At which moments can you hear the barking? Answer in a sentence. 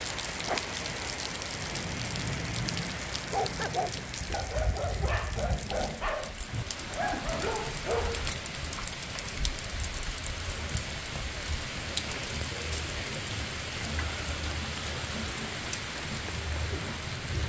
The barking can be heard from 3.3 to 8.2 s.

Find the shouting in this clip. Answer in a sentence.
You can't hear the shouting here.